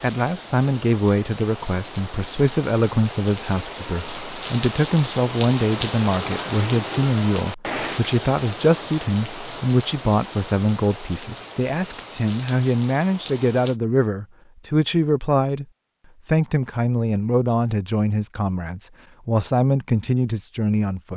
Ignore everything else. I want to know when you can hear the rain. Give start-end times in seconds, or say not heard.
0.0-13.8.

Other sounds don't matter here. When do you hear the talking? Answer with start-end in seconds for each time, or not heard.
0.0-15.7, 16.2-21.1.